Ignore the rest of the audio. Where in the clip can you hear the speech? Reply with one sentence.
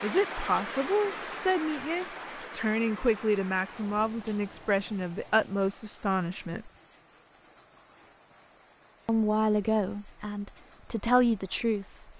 You can hear the speech from 0.0 to 6.7 s and from 9.1 to 12.1 s.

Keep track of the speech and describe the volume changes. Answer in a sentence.
The loudness of the speech stays about the same.